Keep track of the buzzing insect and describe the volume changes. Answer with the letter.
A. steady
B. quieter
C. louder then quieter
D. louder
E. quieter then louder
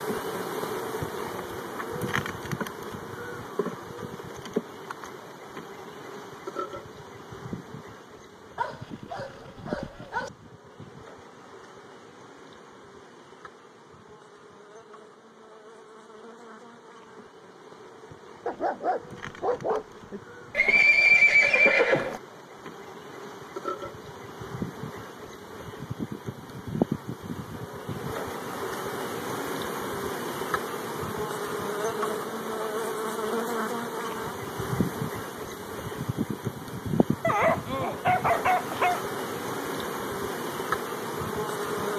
E.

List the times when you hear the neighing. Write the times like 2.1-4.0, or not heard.
20.6-22.2.